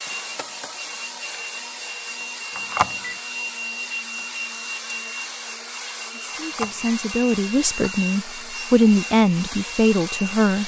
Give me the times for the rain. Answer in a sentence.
You can't hear the rain here.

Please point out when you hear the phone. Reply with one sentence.
You can hear the phone from 2.5 to 3.1 s and from 6.3 to 7.0 s.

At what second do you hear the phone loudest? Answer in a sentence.
The volume of the phone peaks at 3 seconds.